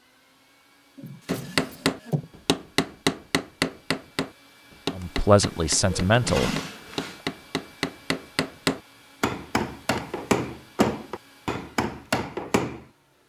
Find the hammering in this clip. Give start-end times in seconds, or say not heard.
1.2-12.8.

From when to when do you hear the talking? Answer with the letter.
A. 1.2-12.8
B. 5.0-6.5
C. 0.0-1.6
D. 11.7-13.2
B.